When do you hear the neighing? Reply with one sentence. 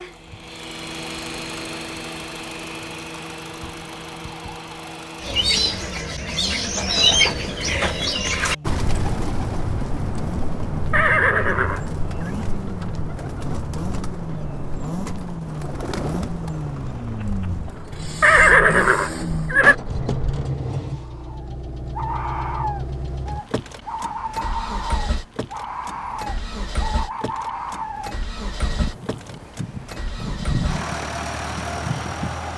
The neighing can be heard from 10.9 to 12.3 s and from 18.2 to 19.8 s.